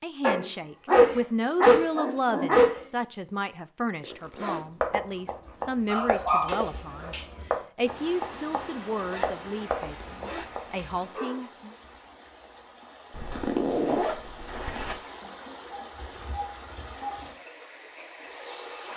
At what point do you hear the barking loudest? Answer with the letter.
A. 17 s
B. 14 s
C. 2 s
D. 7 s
C.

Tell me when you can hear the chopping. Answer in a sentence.
The chopping can be heard from 4.8 to 10.6 s.